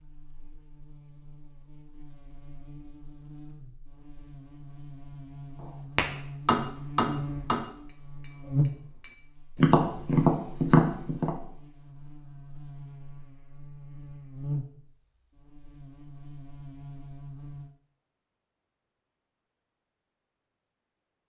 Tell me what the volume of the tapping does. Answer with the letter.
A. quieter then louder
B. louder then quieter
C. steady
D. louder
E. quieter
A.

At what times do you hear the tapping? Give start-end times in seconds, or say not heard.
6.0-11.3.